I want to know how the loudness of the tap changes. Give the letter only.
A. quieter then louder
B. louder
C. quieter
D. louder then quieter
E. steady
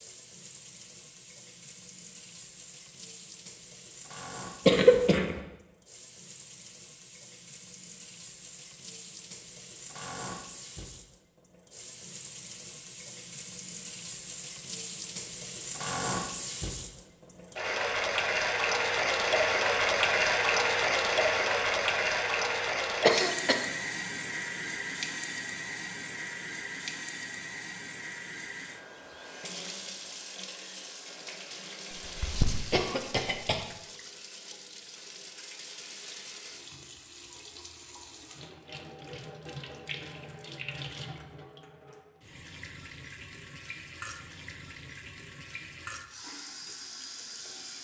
D.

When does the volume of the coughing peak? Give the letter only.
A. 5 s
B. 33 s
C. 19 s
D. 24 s
A.